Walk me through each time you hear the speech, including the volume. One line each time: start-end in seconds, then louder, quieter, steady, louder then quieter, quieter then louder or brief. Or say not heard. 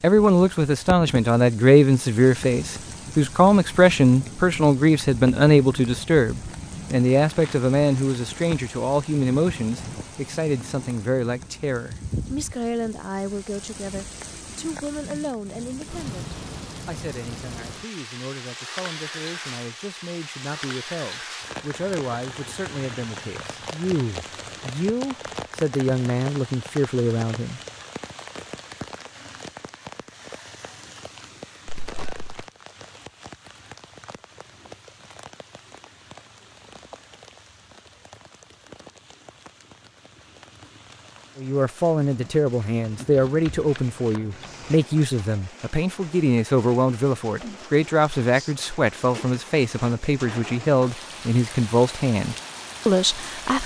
0.0-27.6 quieter then louder
41.4-53.6 steady.